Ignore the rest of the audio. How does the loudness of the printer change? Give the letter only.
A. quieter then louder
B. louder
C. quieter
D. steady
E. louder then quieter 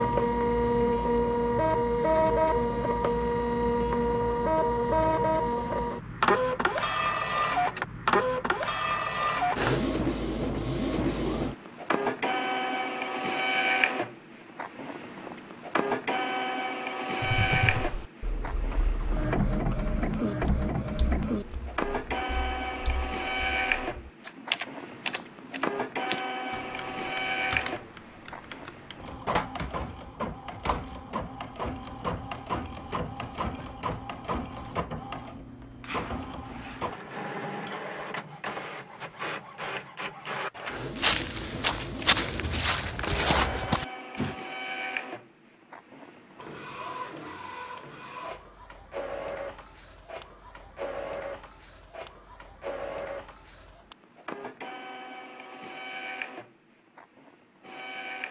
C.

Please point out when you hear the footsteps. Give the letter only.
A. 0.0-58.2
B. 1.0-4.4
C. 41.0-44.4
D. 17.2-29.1
C.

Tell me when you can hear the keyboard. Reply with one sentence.
You can hear the keyboard from 17.2 to 29.1 s.